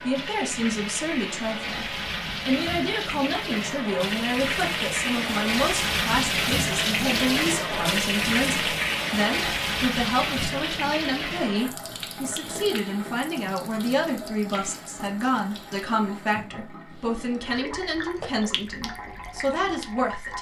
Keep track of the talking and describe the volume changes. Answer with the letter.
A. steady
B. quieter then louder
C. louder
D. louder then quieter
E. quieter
A.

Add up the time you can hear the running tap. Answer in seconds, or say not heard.
20 s.